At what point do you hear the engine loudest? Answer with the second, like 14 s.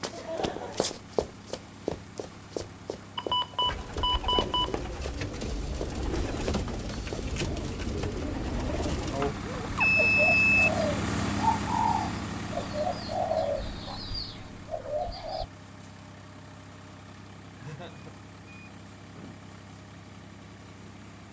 11 s.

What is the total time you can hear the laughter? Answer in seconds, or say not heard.
2 s.